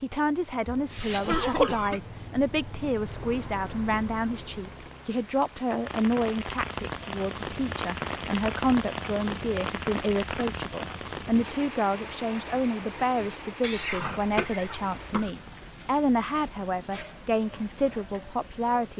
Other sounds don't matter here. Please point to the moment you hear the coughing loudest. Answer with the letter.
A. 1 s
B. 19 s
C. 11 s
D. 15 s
A.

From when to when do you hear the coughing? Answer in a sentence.
The coughing can be heard from 0.7 to 2.0 s, from 10.3 to 10.9 s and from 13.6 to 15.3 s.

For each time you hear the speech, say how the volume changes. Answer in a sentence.
You can hear the speech from 0.0 to 18.9 s, at a steady volume.